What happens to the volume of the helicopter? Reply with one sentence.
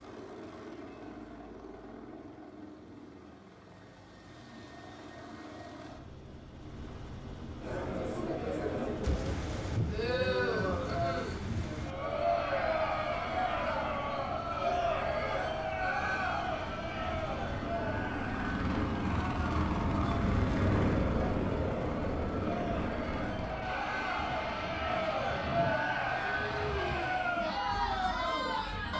The loudness of the helicopter goes up, then down.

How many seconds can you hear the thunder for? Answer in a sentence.
You can hear the thunder for 6 seconds altogether.